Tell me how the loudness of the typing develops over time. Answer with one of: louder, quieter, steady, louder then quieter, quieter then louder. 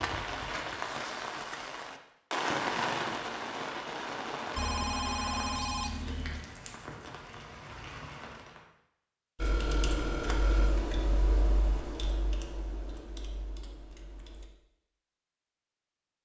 quieter.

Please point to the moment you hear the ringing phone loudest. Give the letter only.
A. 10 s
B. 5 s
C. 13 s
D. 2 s
B.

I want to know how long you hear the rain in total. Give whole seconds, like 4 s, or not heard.
9 s.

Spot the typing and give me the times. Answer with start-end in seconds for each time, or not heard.
9.3-14.5.